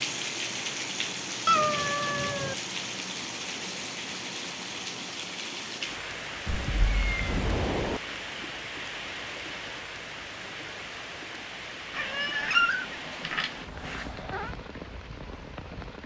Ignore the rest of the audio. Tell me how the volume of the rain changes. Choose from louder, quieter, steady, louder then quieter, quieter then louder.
quieter.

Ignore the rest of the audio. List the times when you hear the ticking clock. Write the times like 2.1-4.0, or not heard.
not heard.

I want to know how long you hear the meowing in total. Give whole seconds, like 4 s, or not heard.
5 s.